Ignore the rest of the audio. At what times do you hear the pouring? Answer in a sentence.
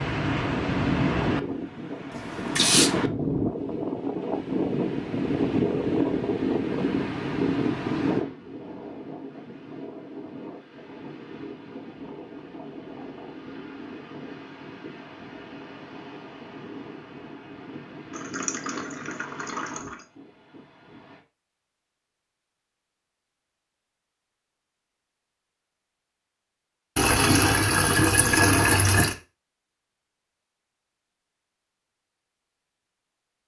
The pouring can be heard from 2.1 to 2.9 s, from 18.1 to 20.0 s and from 26.9 to 29.1 s.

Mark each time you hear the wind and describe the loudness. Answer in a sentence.
The wind can be heard from 0.0 to 21.2 s, getting quieter.